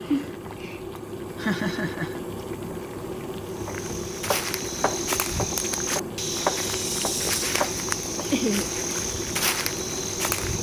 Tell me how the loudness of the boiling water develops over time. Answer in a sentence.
The volume of the boiling water stays about the same.